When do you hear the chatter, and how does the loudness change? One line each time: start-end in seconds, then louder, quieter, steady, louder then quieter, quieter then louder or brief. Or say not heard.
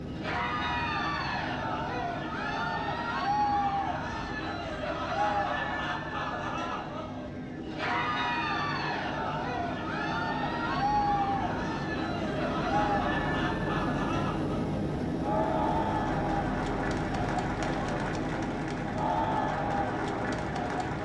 0.1-20.9 steady.